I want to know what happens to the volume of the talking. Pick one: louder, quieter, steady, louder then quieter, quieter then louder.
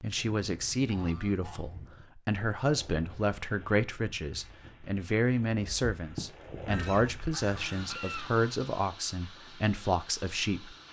steady.